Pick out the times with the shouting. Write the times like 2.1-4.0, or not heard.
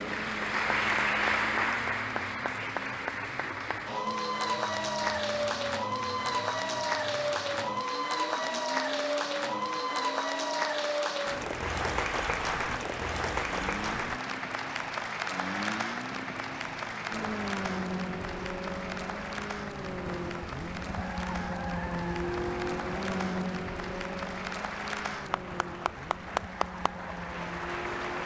not heard.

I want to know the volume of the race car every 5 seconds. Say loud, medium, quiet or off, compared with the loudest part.
medium, medium, medium, loud, loud, medium.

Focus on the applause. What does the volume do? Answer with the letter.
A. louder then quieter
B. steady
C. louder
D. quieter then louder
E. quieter
E.